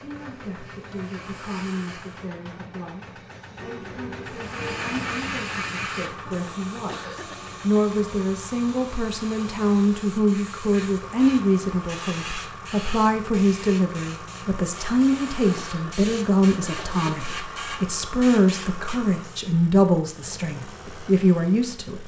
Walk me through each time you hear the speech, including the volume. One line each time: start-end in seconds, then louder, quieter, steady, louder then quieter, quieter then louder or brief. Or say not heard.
0.0-22.0 louder.